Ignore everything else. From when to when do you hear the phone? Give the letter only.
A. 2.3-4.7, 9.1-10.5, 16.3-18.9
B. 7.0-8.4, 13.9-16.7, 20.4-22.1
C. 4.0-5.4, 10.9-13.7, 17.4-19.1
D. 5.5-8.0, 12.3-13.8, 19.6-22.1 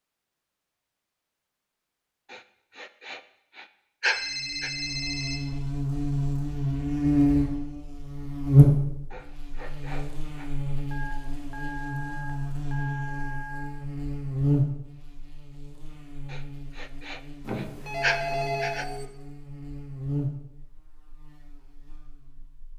C.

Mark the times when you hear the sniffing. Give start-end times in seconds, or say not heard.
2.3-4.7, 9.1-10.5, 16.3-18.9.